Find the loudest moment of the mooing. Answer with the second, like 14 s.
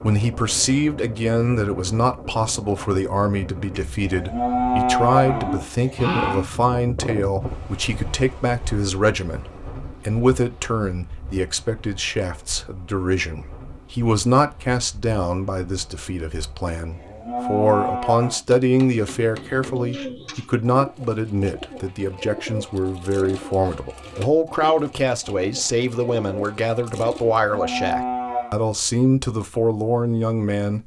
5 s.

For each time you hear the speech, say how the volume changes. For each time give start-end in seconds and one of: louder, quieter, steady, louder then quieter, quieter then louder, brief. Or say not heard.
0.0-30.8 steady.